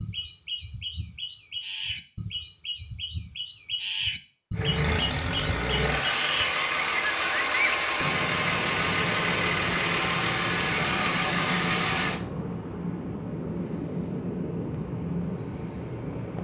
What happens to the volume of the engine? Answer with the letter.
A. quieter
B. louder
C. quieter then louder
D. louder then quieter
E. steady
E.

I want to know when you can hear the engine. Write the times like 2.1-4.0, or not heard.
4.5-12.2.